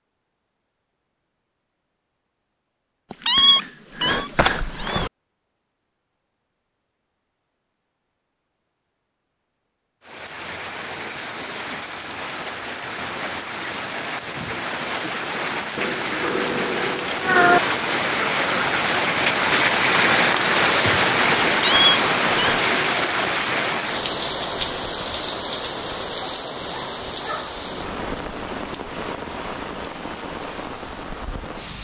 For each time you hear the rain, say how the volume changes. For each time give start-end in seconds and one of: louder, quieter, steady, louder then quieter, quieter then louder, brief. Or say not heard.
10.0-31.8 louder then quieter.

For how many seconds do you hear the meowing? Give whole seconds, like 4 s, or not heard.
5 s.